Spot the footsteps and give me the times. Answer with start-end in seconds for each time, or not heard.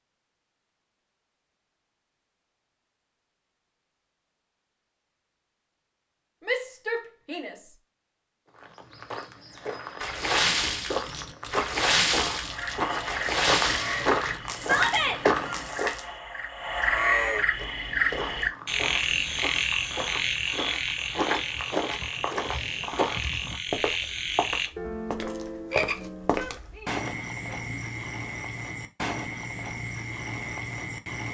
8.6-15.9, 17.6-27.1.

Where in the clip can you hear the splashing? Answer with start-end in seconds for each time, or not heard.
10.0-16.1.